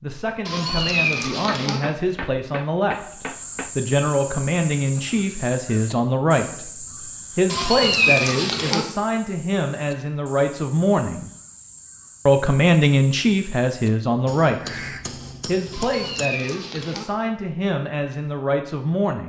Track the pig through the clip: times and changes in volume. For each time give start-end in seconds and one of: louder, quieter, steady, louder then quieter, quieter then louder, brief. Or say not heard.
not heard.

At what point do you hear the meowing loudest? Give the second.
8 s.